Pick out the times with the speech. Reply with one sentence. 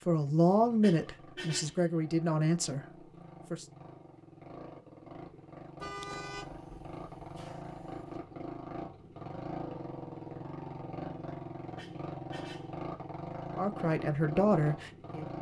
You can hear the speech from 0.1 to 3.6 s and from 13.6 to 15.3 s.